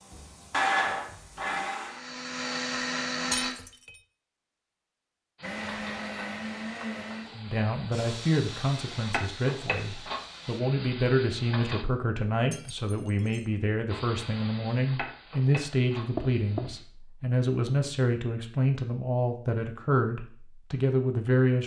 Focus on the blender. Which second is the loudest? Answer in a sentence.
The loudest moment of the blender is at 1 second.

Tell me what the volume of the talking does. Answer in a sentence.
The loudness of the talking stays about the same.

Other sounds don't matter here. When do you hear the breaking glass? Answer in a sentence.
The breaking glass can be heard from 3.3 to 4.0 s and from 12.5 to 13.4 s.